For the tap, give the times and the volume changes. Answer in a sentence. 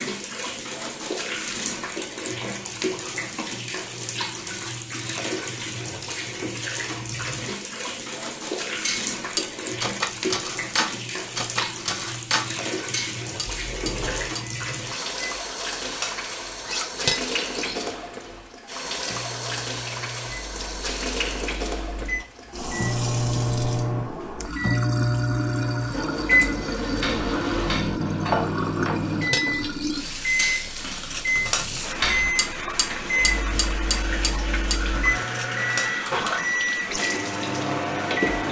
You can hear the tap from 0.0 to 38.4 s, at a steady volume.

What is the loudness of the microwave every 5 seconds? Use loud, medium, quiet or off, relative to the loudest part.
off, off, off, quiet, loud, loud, loud, loud.